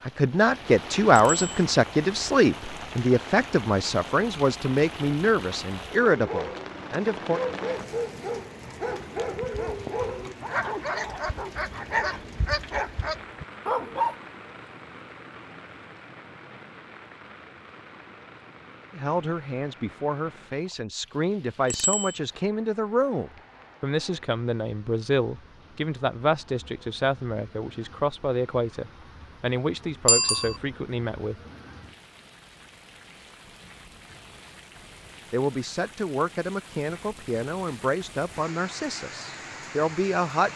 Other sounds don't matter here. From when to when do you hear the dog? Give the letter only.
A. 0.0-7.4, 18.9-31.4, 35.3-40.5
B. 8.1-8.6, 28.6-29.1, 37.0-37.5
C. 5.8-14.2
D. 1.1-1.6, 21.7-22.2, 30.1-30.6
C.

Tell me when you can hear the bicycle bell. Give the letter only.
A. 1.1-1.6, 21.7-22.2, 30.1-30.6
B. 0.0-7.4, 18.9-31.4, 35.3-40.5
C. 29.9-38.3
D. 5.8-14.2
A.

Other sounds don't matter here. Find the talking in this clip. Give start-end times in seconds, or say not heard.
0.0-7.4, 18.9-31.4, 35.3-40.5.